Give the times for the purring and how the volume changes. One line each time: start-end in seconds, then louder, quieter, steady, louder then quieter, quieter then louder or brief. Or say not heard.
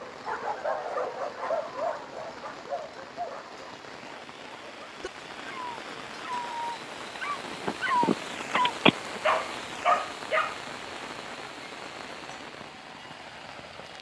not heard.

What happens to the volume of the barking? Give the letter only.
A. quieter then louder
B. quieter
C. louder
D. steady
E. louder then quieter
A.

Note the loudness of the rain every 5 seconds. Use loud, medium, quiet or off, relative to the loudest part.
medium, loud, loud.